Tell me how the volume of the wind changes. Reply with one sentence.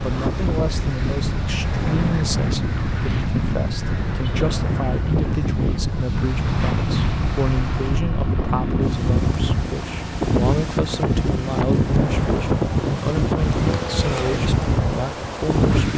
The loudness of the wind stays about the same.